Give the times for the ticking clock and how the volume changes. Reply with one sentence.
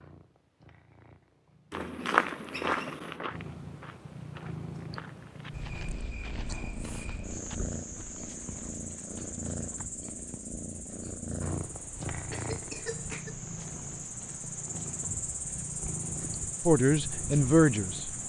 You can't hear the ticking clock here.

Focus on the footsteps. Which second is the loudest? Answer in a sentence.
The loudest moment of the footsteps is at 2 seconds.